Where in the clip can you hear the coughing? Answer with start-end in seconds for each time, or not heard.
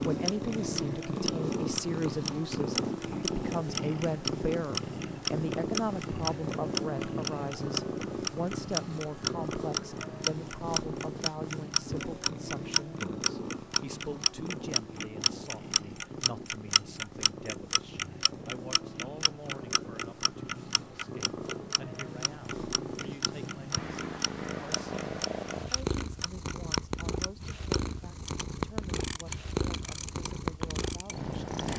not heard.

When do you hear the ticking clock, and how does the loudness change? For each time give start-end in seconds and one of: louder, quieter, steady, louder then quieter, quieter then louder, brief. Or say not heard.
0.0-31.7 quieter.